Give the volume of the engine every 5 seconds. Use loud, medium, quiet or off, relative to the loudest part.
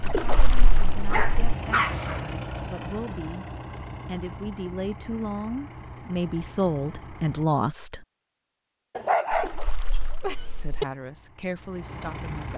loud, medium, medium.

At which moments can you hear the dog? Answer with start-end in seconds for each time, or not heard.
1.1-2.2, 8.9-10.8.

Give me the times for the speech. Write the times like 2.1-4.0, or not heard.
0.1-3.5, 4.0-8.1, 10.4-12.5.